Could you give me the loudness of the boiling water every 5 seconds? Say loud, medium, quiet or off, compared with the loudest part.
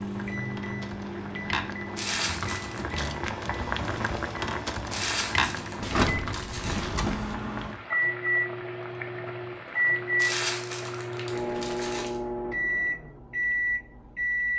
loud, loud, medium.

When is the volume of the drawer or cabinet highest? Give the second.
6 s.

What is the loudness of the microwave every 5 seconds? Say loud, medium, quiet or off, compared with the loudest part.
medium, loud, loud.